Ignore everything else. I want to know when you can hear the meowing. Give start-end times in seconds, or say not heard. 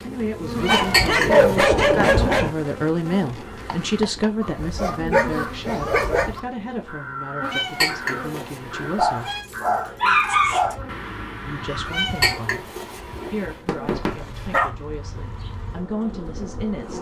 0.6-1.6, 7.4-9.4, 11.8-13.6.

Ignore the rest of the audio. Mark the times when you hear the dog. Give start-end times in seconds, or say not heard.
0.7-2.5, 4.6-6.3, 8.9-10.8, 13.7-14.7.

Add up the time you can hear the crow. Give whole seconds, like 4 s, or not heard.
9 s.